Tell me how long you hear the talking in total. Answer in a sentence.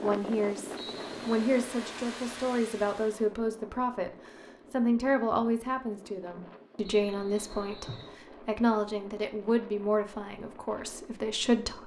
You can hear the talking for 11 seconds altogether.